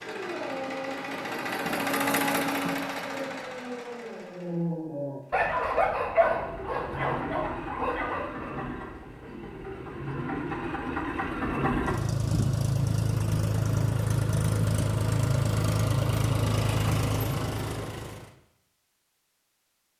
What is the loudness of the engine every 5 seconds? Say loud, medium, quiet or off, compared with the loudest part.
medium, medium, loud, loud.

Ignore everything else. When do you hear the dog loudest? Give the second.
6 s.